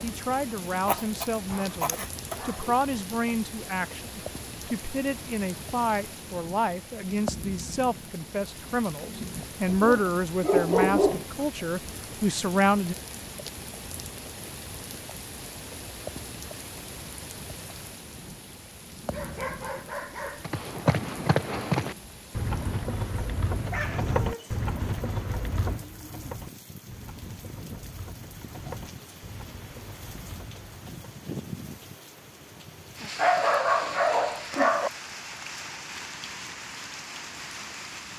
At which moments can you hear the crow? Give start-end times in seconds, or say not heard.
not heard.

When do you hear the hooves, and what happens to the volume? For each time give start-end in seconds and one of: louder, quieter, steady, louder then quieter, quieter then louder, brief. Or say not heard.
20.4-31.1 quieter.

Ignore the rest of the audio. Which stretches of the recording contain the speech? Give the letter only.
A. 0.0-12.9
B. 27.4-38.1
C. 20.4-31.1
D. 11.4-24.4
A.